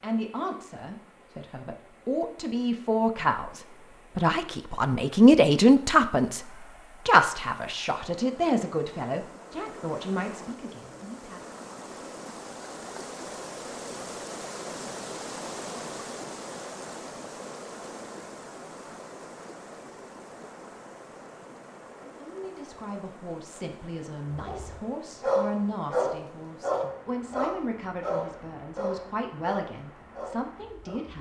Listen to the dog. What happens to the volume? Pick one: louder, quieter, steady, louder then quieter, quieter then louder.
quieter.